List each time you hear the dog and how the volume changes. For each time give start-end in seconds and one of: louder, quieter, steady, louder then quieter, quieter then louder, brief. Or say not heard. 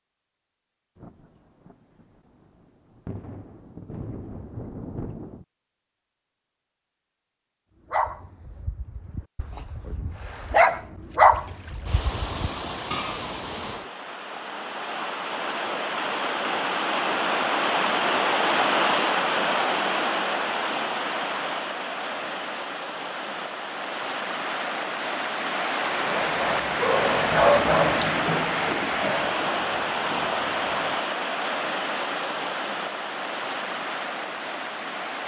7.9-13.2 louder then quieter
25.9-31.0 louder then quieter.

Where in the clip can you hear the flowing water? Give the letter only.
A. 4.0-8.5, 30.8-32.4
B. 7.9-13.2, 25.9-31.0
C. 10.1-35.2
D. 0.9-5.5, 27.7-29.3
C.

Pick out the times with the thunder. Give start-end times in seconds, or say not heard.
0.9-5.5, 27.7-29.3.